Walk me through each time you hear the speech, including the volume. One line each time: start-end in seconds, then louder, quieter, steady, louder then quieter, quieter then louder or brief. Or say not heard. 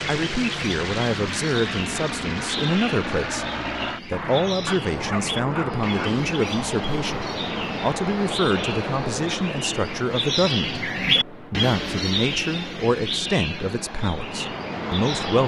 0.1-15.4 steady.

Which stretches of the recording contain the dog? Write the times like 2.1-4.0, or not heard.
4.7-6.1.